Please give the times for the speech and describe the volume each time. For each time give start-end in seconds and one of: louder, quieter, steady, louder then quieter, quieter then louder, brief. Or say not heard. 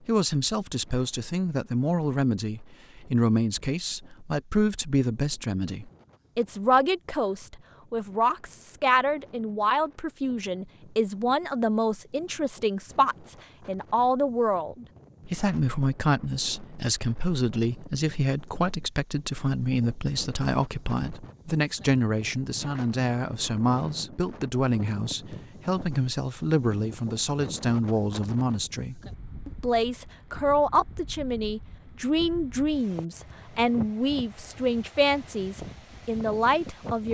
0.1-37.0 steady.